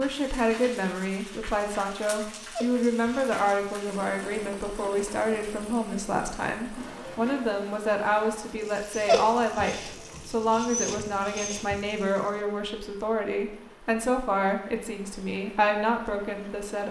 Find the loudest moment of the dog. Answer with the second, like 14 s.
9 s.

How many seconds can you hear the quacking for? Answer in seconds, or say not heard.
not heard.